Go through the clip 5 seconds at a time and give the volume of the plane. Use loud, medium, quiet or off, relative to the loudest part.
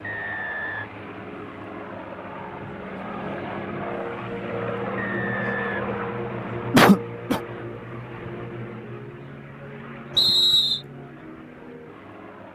loud, loud, medium.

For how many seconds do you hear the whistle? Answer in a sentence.
You can hear the whistle for 3 seconds altogether.